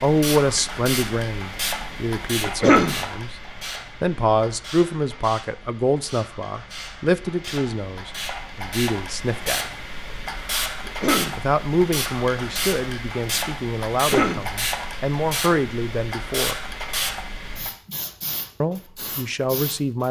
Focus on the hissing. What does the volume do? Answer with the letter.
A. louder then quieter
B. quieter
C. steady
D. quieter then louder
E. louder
D.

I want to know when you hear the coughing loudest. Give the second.
3 s.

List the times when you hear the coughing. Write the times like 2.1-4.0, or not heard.
2.5-3.0, 10.8-11.4, 13.9-14.4.